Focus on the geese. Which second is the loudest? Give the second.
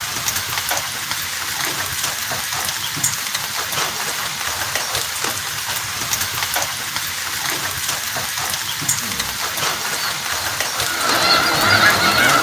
12 s.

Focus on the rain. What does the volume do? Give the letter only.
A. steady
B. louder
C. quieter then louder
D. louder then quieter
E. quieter
A.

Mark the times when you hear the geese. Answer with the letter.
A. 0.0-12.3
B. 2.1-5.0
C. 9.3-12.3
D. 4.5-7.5
C.